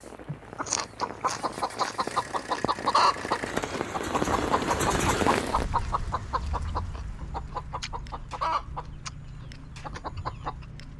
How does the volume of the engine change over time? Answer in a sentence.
The volume of the engine goes up, then down.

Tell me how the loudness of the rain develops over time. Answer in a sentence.
The loudness of the rain goes up, then down.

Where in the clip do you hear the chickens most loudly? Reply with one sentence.
The volume of the chickens peaks at 3 seconds.